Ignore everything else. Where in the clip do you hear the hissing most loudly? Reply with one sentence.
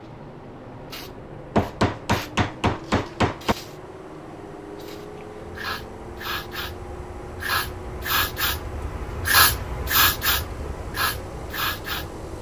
The loudest moment of the hissing is at 10 seconds.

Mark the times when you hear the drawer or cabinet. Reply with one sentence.
You can't hear the drawer or cabinet here.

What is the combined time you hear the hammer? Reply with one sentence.
You can hear the hammer for 2 seconds altogether.